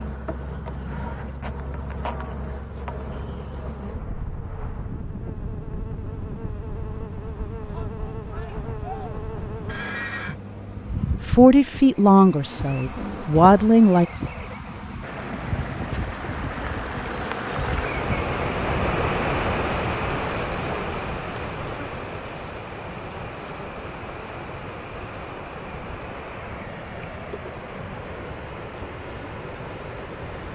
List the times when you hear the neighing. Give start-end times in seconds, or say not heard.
9.7-10.3.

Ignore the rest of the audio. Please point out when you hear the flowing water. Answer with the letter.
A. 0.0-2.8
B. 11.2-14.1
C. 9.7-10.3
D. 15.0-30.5
D.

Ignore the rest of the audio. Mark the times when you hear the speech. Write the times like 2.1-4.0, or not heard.
11.2-14.1.